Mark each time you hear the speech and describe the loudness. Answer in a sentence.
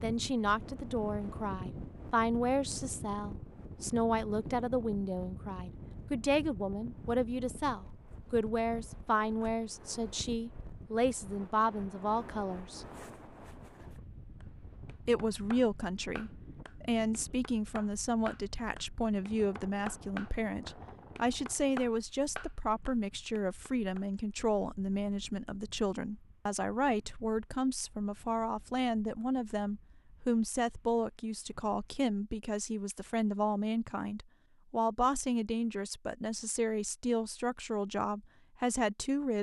The speech can be heard from 0.0 to 12.8 s, at a steady volume; and from 15.1 to 39.3 s, at a steady volume.